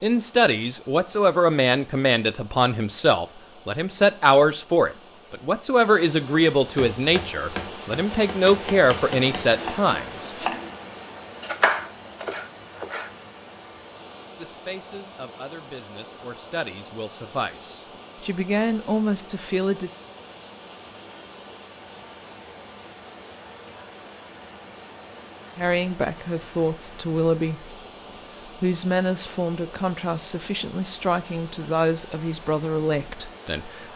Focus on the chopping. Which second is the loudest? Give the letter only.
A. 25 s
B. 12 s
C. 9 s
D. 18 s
B.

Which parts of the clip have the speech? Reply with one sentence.
You can hear the speech from 0.0 to 10.3 s, from 14.3 to 19.9 s, from 25.6 to 27.8 s and from 28.4 to 33.9 s.